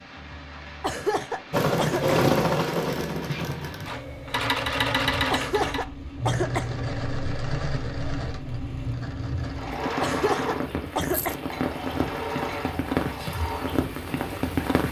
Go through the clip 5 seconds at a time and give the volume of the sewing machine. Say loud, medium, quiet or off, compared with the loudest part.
loud, medium, medium.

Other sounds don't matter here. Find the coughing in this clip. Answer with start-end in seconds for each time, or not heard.
0.8-2.1, 5.3-6.8, 10.0-11.3.